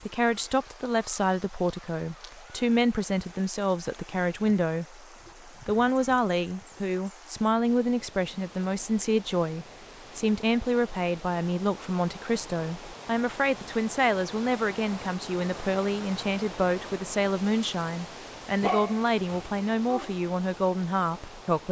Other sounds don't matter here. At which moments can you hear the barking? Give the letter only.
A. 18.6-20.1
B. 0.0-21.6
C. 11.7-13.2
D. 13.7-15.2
A.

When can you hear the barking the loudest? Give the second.
19 s.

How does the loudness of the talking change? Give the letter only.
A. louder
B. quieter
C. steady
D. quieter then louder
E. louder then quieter
C.